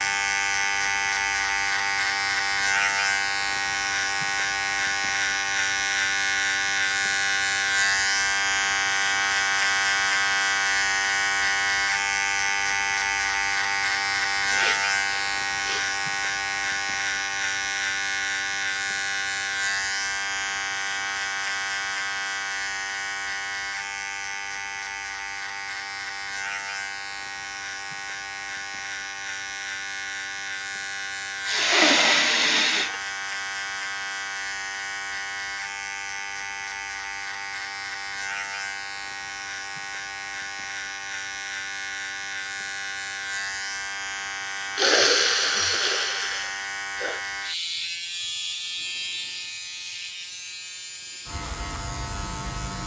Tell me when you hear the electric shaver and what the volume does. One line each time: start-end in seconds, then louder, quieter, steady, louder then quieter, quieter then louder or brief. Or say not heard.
0.0-52.8 quieter.